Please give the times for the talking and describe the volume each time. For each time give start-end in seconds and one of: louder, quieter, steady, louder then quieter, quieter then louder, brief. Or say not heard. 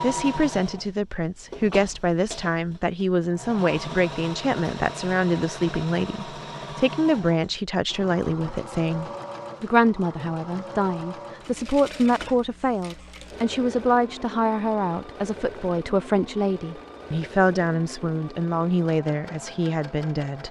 0.0-20.4 steady.